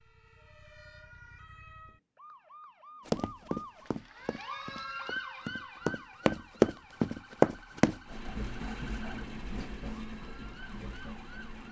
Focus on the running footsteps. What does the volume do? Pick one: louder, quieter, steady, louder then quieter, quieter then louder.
quieter then louder.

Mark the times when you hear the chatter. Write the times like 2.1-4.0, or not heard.
not heard.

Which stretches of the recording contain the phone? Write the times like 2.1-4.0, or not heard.
not heard.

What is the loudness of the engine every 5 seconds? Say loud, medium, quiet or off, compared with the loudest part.
off, loud, medium.